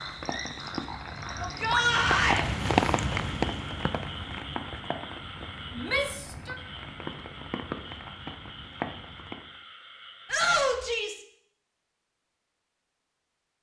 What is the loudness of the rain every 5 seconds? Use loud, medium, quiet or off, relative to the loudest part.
loud, medium, off.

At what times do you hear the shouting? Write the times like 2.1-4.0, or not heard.
1.4-2.5, 5.7-6.5, 10.2-11.2.